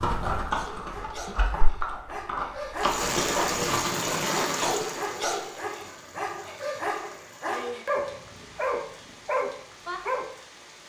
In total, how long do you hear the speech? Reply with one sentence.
You can't hear the speech here.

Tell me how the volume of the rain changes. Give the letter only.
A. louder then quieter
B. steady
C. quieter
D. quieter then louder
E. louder
C.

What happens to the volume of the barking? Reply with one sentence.
The loudness of the barking goes up.